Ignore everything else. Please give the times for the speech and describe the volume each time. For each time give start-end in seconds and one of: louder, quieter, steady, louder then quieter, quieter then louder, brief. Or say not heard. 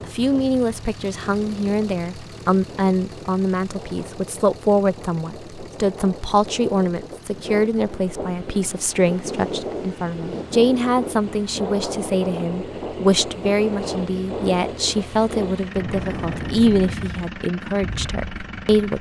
0.1-18.9 steady.